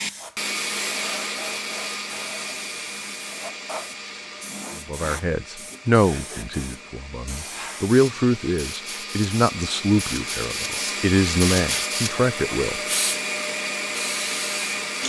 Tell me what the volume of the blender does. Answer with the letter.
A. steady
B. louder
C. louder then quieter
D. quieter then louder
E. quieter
D.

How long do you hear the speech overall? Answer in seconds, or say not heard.
8 s.